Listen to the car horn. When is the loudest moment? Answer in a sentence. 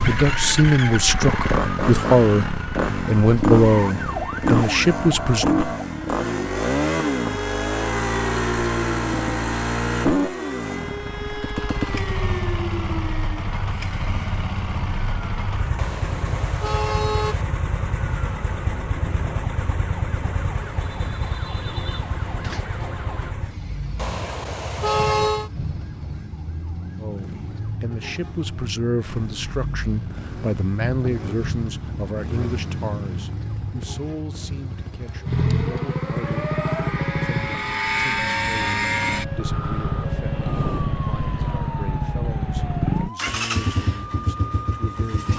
The volume of the car horn peaks at 25 seconds.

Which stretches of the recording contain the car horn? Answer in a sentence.
The car horn can be heard from 15.8 to 17.4 s and from 23.9 to 25.5 s.